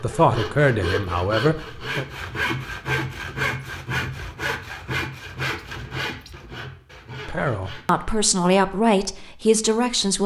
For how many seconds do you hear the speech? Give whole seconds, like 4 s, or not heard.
5 s.